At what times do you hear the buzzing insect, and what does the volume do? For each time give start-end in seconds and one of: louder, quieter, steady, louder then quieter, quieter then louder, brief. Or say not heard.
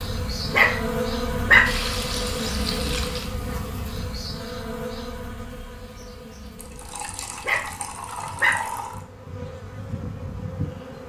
0.0-11.0 quieter then louder.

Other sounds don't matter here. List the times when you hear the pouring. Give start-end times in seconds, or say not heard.
1.6-3.3, 6.5-9.1.